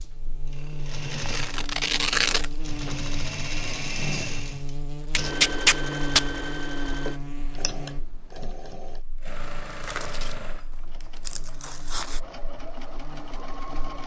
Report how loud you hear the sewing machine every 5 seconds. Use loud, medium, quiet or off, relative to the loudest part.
loud, loud, medium.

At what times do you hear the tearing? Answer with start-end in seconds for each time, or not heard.
1.1-3.0, 5.2-6.2, 9.8-10.3, 11.2-12.2.